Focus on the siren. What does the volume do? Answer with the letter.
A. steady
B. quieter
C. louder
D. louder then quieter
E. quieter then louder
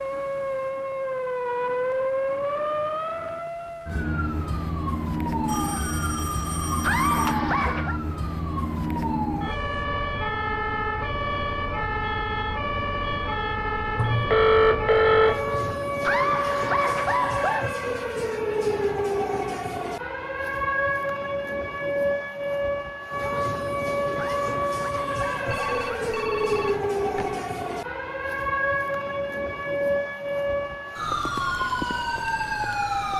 A.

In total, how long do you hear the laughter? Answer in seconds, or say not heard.
5 s.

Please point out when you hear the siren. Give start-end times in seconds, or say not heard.
0.0-33.1.